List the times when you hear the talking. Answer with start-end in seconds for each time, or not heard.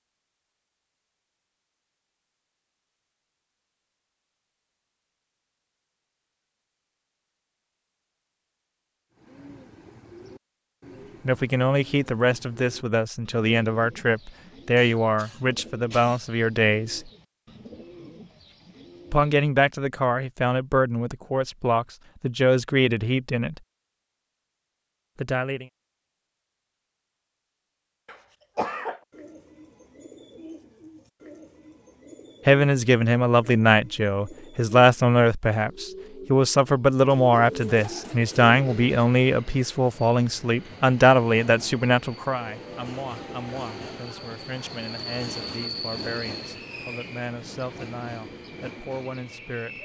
11.2-17.1, 19.1-23.6, 25.2-25.6, 32.5-49.7.